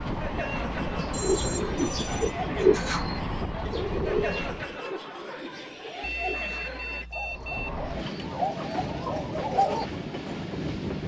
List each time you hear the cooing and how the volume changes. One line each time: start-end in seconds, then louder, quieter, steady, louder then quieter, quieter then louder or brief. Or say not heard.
1.1-9.8 quieter then louder.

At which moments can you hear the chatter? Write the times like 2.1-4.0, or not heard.
0.0-7.0.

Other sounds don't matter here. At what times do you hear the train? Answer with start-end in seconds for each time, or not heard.
0.0-4.8, 7.2-11.0.